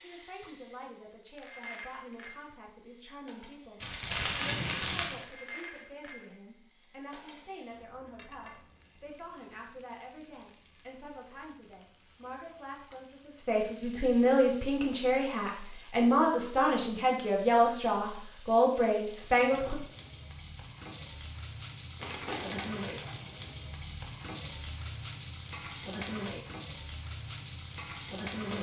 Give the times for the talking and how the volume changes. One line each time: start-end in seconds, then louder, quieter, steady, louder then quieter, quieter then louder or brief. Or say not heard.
0.0-19.8 louder.